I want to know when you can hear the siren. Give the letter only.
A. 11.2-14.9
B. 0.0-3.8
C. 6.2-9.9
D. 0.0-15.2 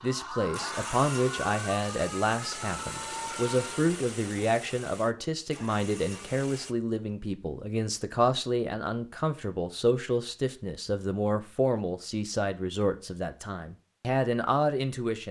B.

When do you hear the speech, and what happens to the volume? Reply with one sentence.
You can hear the speech from 0.0 to 15.2 s, at a steady volume.